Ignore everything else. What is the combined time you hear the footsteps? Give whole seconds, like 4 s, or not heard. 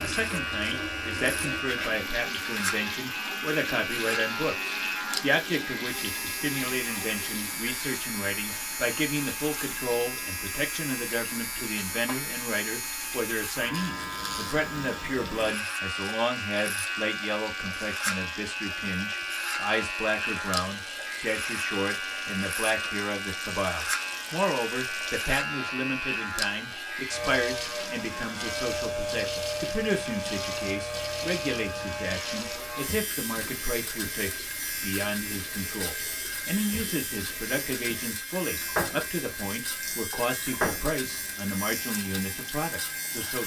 not heard.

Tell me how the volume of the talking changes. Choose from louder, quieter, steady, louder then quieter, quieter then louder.
steady.